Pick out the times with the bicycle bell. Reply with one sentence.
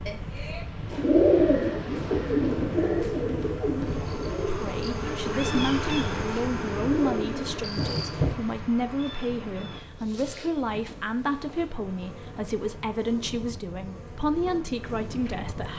You can hear the bicycle bell from 0.1 to 0.7 s.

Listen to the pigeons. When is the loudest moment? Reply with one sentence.
The loudest moment of the pigeons is at 1 second.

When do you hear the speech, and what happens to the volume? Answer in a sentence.
You can hear the speech from 4.5 to 15.7 s, at a steady volume.